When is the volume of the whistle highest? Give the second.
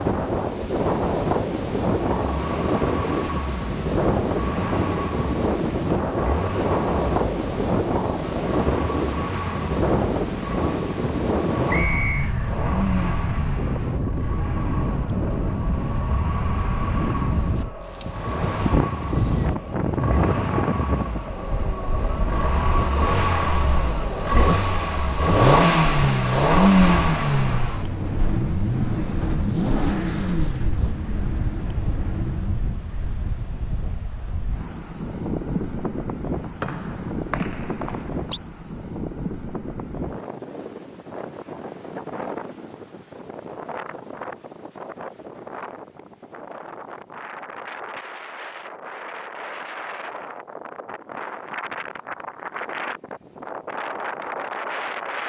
12 s.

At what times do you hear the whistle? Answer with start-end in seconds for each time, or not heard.
11.7-12.3, 36.6-38.4.